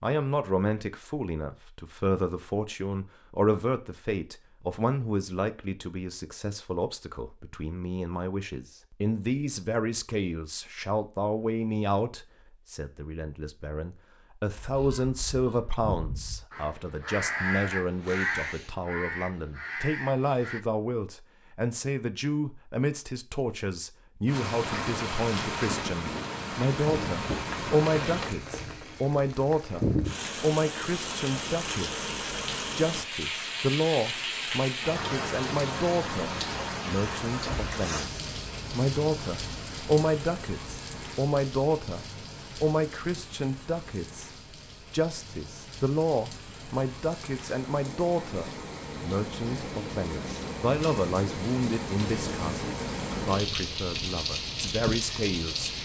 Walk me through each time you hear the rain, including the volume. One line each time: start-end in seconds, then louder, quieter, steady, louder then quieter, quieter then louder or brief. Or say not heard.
24.2-55.8 quieter then louder.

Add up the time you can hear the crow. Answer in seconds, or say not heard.
6 s.